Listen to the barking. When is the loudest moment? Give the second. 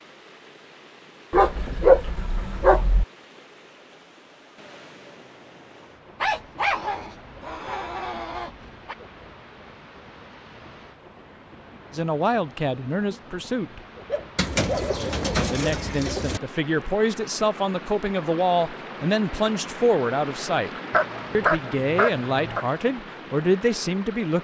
2 s.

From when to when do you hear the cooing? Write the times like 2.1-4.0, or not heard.
14.3-16.4.